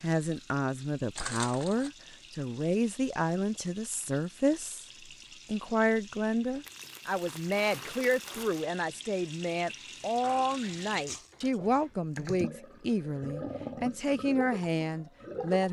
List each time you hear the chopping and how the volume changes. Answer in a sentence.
You can't hear the chopping here.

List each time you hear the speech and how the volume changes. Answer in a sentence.
You can hear the speech from 0.0 to 15.6 s, at a steady volume.